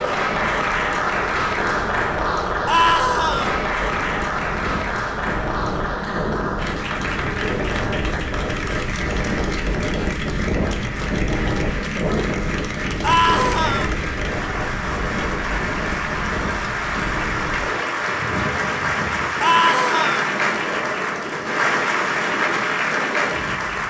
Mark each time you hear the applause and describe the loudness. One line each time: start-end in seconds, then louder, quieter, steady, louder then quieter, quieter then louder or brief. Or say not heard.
0.0-23.8 quieter then louder.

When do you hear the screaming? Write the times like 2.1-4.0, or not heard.
2.6-3.5, 13.0-13.9, 19.4-20.2.